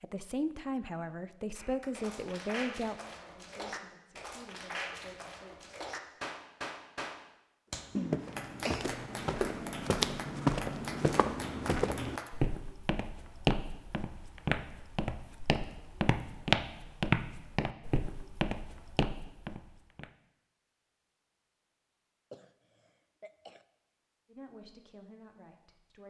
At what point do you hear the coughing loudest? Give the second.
8 s.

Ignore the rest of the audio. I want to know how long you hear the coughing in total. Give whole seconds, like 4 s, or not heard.
2 s.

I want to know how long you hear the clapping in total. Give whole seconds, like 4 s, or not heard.
11 s.